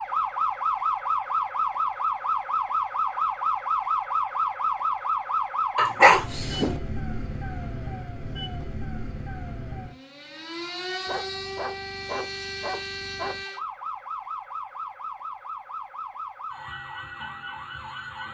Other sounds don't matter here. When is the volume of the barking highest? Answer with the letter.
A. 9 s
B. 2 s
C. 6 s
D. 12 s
C.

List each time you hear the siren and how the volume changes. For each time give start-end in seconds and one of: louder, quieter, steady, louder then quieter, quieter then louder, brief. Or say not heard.
0.0-18.2 quieter.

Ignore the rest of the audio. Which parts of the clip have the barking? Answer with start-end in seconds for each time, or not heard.
5.8-6.8, 11.1-13.4.